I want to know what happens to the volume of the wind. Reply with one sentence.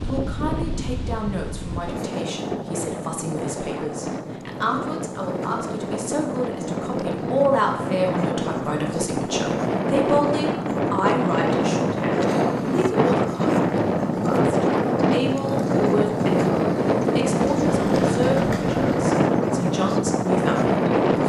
The loudness of the wind goes up.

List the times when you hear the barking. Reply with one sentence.
The barking can't be heard in this clip.